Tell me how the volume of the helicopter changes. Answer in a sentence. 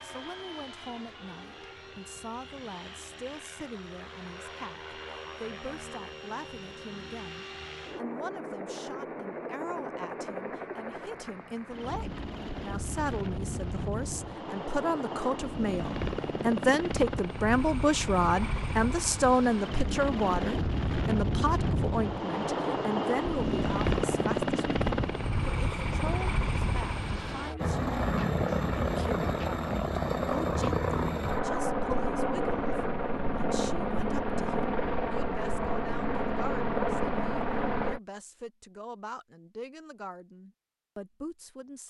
The loudness of the helicopter goes up.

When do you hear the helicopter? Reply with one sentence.
The helicopter can be heard from 0.0 to 38.0 s.